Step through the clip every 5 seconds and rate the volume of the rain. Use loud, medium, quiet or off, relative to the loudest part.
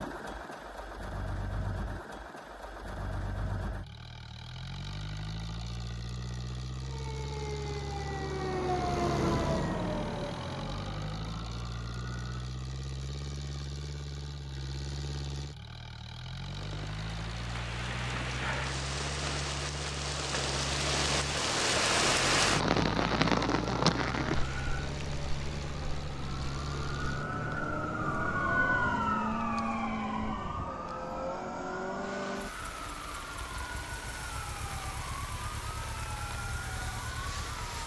off, off, off, medium, loud, quiet, quiet, quiet.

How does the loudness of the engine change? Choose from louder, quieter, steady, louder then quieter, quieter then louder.
steady.